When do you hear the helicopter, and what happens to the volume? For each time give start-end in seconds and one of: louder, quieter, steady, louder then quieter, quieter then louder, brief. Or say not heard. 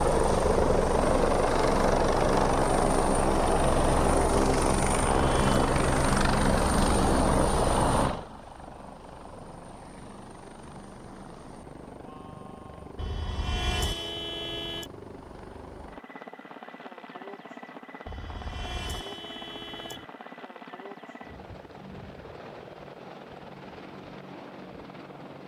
0.0-25.4 quieter.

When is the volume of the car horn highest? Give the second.
14 s.